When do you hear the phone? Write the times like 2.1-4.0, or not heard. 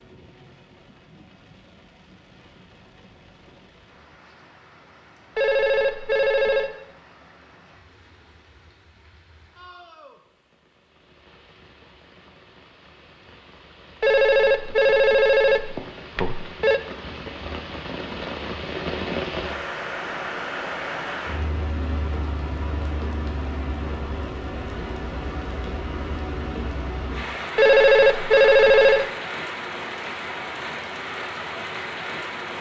5.3-6.7, 14.0-16.8, 27.6-29.1.